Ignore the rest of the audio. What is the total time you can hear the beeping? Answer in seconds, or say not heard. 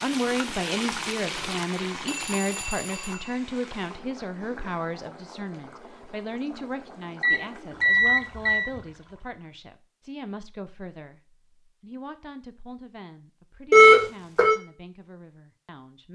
4 s.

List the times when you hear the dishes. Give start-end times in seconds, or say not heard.
not heard.